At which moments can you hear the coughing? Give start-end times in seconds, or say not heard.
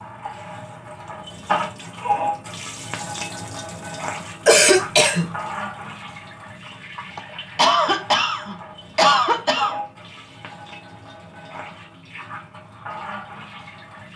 4.5-5.2, 7.2-9.8.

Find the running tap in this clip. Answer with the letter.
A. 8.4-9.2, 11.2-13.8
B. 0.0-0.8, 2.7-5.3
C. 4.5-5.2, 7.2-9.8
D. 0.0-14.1
D.